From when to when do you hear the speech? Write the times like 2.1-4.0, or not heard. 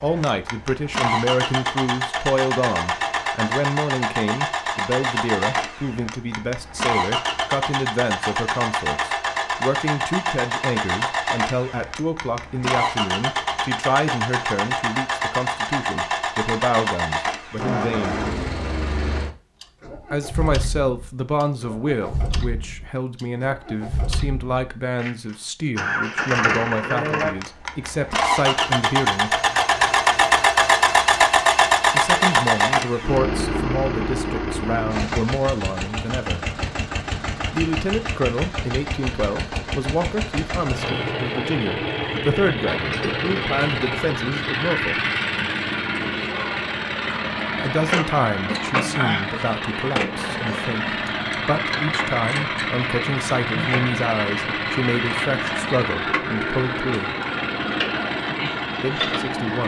0.0-18.2, 20.1-29.4, 31.9-36.5, 37.5-45.0, 47.6-57.1, 58.8-59.6.